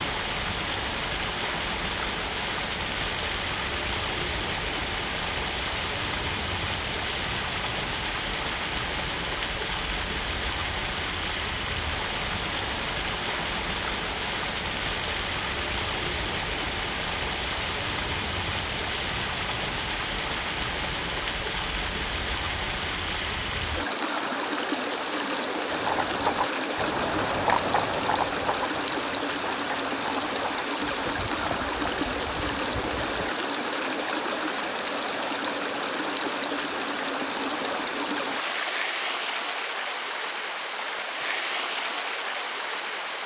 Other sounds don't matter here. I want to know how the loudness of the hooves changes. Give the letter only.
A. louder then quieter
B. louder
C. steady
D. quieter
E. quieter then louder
D.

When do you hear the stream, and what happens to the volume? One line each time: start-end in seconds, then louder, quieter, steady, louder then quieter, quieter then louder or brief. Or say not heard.
0.0-43.2 steady.